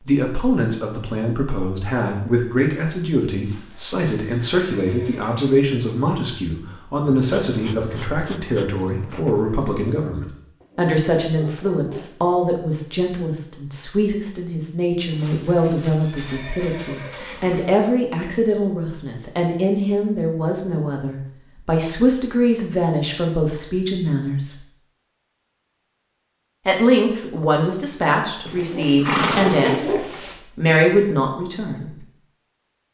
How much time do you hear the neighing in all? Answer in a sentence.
You can hear the neighing for 7 seconds altogether.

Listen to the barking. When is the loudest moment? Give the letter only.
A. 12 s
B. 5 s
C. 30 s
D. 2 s
C.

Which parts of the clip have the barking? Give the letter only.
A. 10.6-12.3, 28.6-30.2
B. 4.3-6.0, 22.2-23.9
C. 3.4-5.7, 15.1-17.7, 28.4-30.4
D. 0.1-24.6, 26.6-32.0
A.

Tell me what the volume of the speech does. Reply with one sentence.
The volume of the speech stays about the same.